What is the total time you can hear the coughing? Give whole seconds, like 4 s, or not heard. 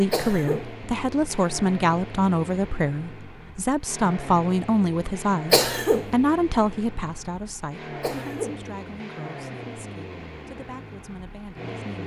2 s.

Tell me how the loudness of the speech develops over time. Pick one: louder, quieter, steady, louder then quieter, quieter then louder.
quieter.